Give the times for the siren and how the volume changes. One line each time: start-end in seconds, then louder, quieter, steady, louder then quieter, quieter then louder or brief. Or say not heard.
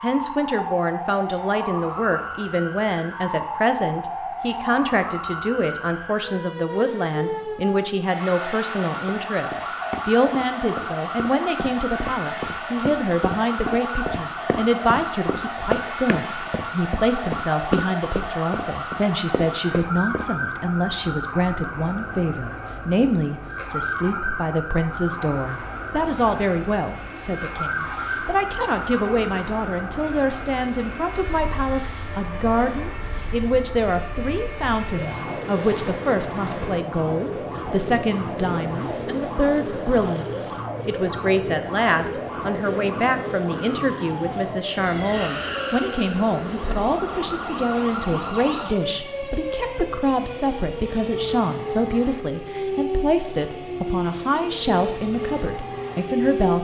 0.0-56.5 steady.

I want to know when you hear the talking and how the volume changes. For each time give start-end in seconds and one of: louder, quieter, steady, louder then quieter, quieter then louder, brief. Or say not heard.
0.0-56.5 steady.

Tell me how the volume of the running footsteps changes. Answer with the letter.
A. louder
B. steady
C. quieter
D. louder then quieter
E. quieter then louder
D.